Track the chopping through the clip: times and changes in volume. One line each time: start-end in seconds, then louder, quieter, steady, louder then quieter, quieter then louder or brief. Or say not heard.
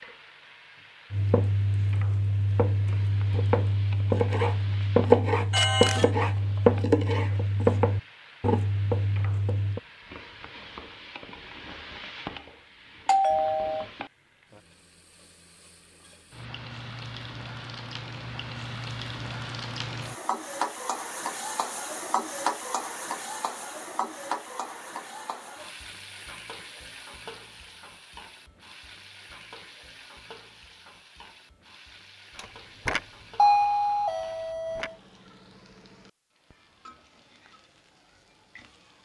1.1-9.8 louder then quieter.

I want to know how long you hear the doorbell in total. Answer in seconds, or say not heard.
4 s.